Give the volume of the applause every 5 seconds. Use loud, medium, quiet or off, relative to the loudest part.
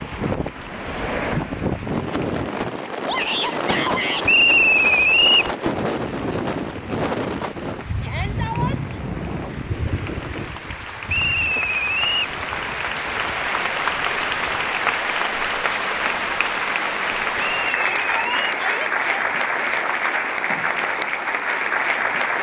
quiet, quiet, loud, loud, loud.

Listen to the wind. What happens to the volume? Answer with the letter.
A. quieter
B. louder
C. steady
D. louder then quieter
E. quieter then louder
A.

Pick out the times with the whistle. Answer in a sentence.
You can hear the whistle from 4.2 to 5.5 s, from 11.1 to 12.3 s and from 17.4 to 18.4 s.